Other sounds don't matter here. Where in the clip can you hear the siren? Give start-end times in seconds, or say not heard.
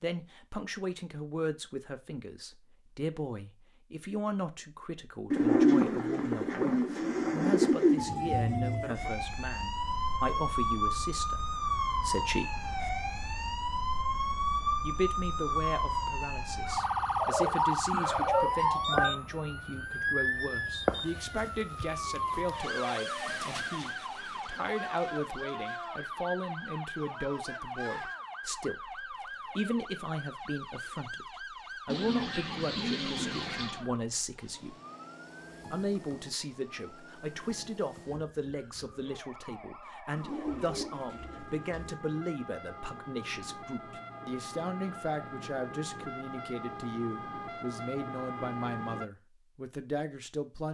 8.0-49.1.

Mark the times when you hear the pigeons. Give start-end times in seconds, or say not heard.
5.3-8.1, 17.2-19.1, 31.9-33.8, 40.1-42.0.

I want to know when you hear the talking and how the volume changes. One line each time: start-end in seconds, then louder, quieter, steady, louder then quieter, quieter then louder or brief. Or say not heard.
0.0-12.7 steady
14.8-34.8 steady
35.7-50.6 steady.